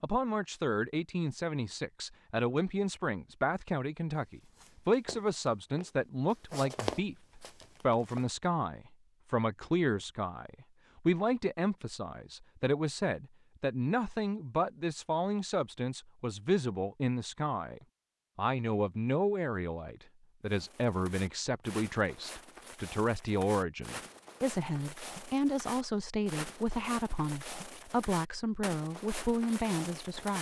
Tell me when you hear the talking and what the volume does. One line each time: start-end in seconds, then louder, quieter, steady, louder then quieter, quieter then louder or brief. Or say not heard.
0.0-30.3 steady.